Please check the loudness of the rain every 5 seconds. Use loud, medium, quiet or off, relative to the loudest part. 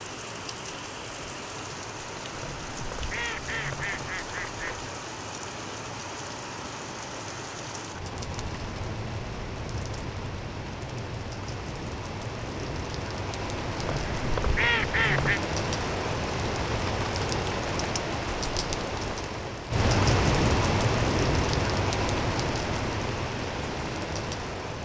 medium, medium, medium, loud, loud.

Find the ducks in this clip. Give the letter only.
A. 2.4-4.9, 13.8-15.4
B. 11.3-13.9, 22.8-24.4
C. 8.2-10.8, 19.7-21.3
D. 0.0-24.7
A.